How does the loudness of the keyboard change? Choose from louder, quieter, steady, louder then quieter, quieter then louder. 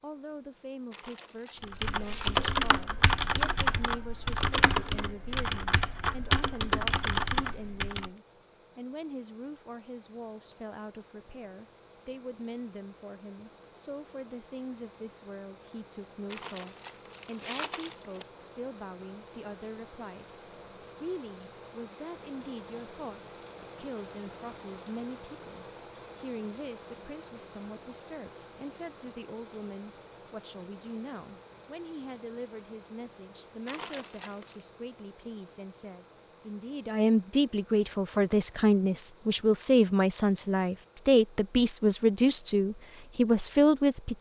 steady.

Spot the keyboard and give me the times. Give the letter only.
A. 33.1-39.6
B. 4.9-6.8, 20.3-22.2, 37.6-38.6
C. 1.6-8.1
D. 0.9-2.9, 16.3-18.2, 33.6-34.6
C.